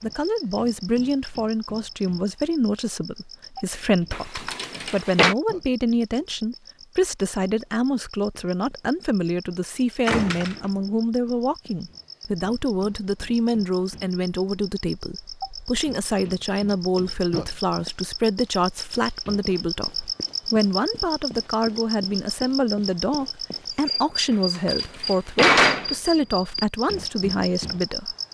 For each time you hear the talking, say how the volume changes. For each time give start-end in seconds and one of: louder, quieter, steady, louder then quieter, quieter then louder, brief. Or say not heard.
0.0-28.1 steady.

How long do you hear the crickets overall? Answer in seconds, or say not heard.
28 s.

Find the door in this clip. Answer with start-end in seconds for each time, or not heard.
4.1-5.3, 10.1-10.8, 24.6-25.9.